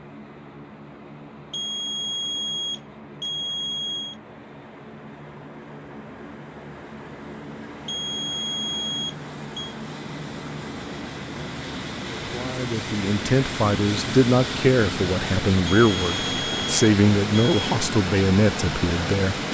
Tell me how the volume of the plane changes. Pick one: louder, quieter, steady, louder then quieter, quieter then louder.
louder.